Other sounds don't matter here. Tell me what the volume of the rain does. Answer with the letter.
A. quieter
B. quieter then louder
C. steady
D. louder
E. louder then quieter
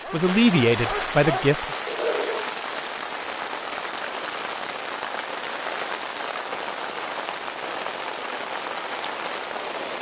C.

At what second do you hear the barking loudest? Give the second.
2 s.